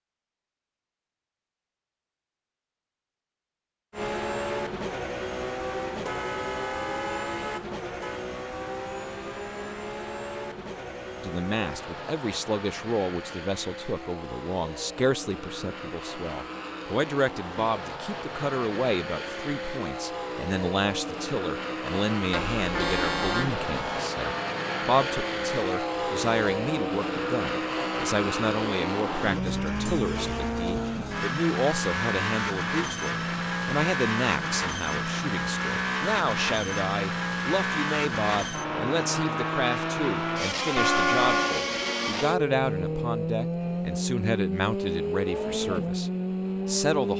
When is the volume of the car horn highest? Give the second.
41 s.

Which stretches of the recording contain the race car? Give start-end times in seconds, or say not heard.
3.9-47.1.